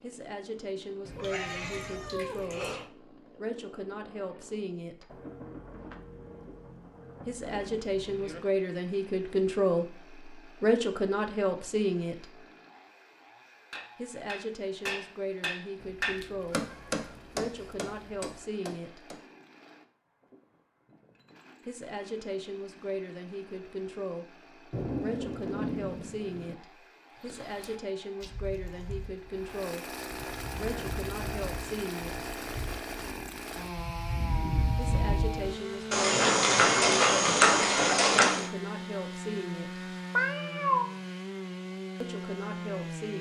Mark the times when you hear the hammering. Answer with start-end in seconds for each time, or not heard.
13.7-19.2.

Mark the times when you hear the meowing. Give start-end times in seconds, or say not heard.
1.1-2.9, 15.8-18.1, 40.1-40.9.